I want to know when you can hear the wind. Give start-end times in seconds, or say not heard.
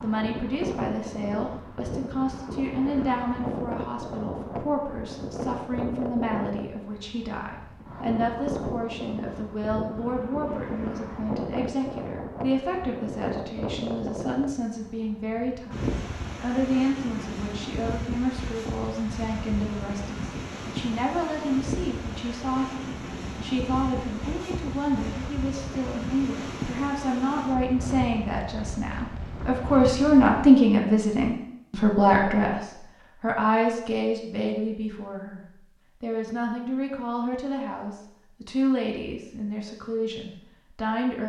0.0-30.5.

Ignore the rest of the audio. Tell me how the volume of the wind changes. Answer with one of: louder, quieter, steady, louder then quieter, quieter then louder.
steady.